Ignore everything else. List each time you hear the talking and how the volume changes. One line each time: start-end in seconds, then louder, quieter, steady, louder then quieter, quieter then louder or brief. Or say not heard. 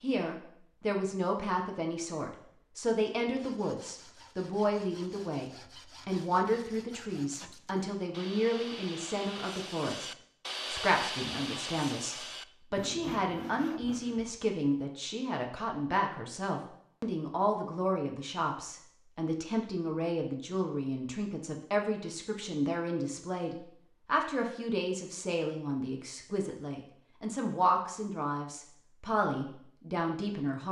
0.0-10.1 steady
10.7-30.6 steady.